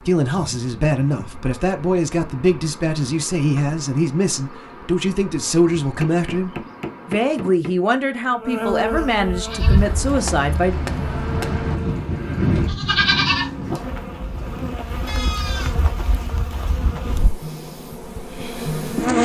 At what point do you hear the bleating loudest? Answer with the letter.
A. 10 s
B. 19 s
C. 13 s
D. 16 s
C.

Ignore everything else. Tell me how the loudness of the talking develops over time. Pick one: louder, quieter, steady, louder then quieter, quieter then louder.
steady.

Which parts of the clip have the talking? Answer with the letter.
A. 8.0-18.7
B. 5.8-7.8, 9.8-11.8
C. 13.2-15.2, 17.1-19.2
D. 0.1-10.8
D.